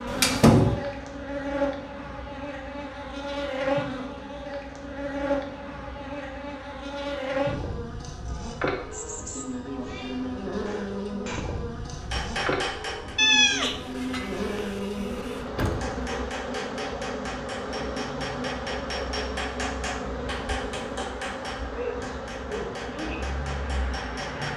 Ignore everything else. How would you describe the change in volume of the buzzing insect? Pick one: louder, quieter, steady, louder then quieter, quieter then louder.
steady.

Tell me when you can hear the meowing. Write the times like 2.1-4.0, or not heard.
8.9-10.2, 13.2-15.4.